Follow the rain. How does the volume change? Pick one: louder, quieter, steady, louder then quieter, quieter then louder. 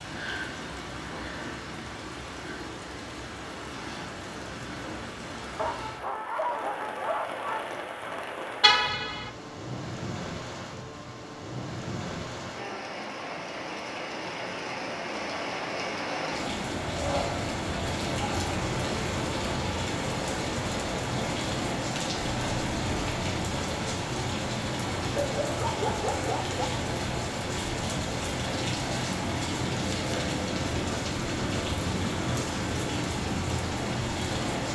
louder.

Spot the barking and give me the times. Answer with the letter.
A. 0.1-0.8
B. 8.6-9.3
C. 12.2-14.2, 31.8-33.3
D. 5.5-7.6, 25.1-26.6
D.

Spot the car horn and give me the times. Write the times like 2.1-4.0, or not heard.
8.6-9.3.